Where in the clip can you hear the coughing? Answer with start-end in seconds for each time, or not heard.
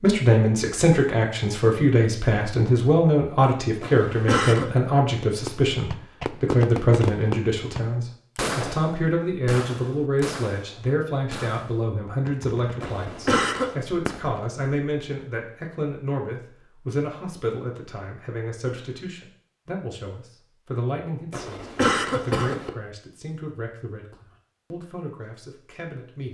3.8-4.7, 12.8-13.8, 21.3-22.7.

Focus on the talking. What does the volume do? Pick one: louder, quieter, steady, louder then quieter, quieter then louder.
quieter.